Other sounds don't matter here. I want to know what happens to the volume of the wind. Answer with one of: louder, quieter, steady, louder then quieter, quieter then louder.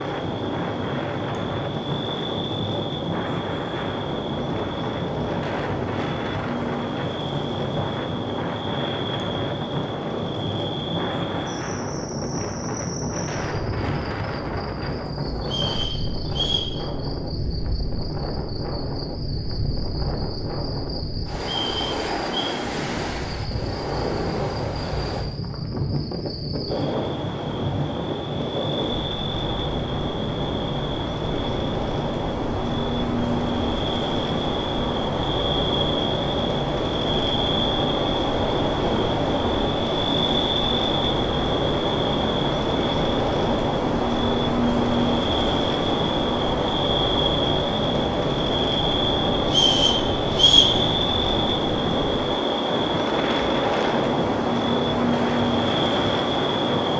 steady.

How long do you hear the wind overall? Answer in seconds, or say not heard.
57 s.